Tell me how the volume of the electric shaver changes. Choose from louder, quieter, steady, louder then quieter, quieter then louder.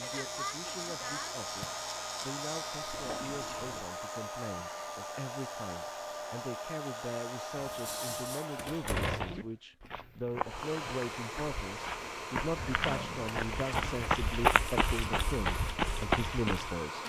quieter.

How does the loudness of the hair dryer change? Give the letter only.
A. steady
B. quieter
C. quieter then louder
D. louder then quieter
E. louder
A.